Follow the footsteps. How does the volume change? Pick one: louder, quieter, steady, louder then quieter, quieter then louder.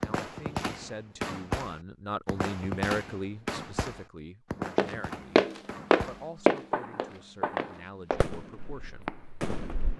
quieter.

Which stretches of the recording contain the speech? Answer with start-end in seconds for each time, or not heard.
0.0-5.4, 6.0-9.1.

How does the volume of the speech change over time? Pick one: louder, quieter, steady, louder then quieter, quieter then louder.
louder then quieter.